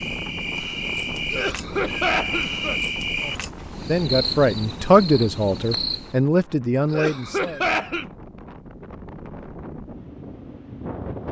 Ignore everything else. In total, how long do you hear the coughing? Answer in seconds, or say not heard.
3 s.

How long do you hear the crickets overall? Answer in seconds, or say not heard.
6 s.